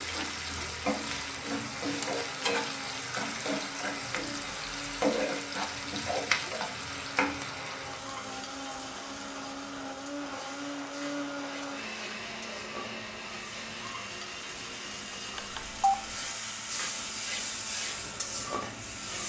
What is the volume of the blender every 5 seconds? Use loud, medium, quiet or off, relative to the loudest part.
medium, loud, loud, medium.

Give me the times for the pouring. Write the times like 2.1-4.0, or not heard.
not heard.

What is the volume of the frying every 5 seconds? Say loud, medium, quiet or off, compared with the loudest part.
loud, loud, medium, loud.